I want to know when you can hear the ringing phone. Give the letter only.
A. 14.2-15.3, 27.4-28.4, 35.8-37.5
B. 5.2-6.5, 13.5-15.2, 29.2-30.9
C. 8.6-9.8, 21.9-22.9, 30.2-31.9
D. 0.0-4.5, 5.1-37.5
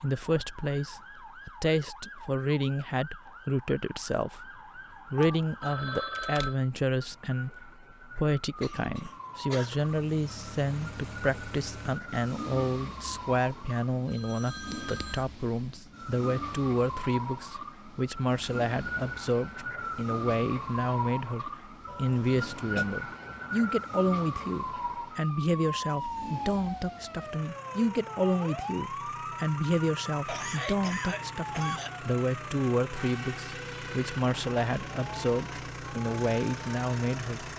B.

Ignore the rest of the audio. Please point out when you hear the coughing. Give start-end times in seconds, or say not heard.
8.6-9.8, 21.9-22.9, 30.2-31.9.